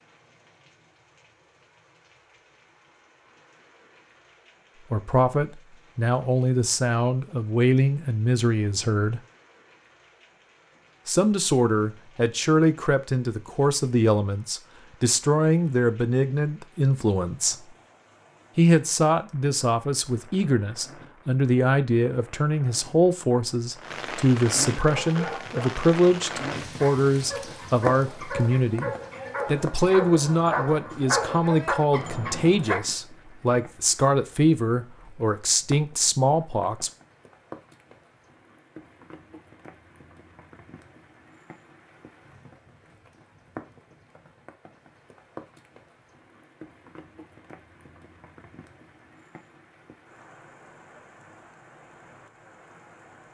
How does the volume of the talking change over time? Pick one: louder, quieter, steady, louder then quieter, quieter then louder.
steady.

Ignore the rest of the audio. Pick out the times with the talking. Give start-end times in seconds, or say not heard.
4.9-9.2, 11.1-17.6, 18.6-36.9.